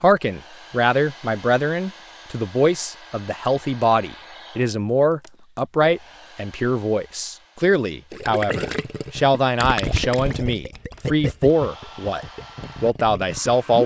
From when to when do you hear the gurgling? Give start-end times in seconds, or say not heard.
8.1-13.8.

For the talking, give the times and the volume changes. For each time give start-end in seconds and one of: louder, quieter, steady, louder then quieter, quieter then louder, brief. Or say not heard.
0.0-13.8 steady.